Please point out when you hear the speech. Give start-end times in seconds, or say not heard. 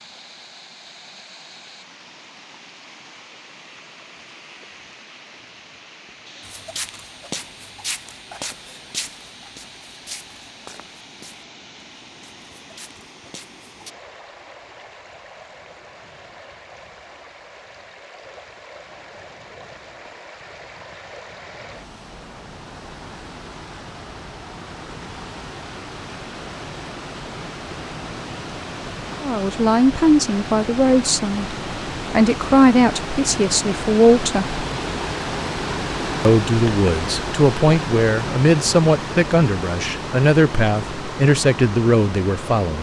29.2-34.6, 36.2-42.7.